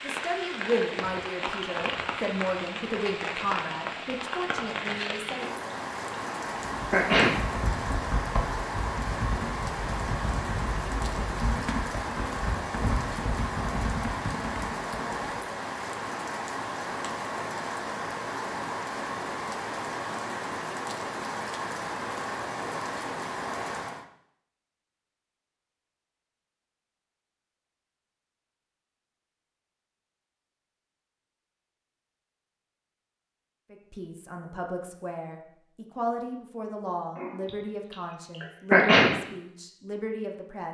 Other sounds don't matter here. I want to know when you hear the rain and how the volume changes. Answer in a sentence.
The rain can be heard from 0.0 to 24.1 s, at a steady volume.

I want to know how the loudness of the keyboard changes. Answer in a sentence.
The volume of the keyboard stays about the same.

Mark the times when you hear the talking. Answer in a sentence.
The talking can be heard from 0.0 to 5.5 s and from 33.7 to 40.6 s.